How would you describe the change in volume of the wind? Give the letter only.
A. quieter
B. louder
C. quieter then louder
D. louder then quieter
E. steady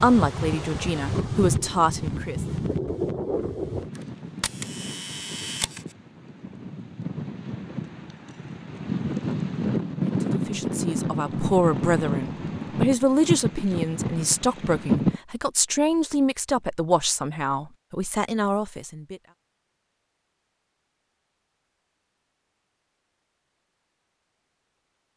C.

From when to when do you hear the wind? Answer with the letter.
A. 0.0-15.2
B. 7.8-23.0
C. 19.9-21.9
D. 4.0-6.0
A.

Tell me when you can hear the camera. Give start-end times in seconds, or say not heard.
4.0-6.0.